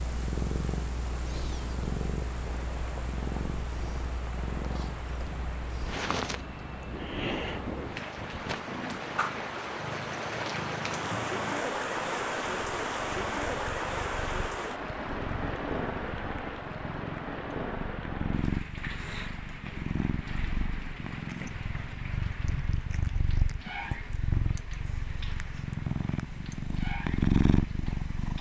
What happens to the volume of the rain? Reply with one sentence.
The loudness of the rain goes up, then down.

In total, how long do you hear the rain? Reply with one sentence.
The rain can be heard for 28 seconds in total.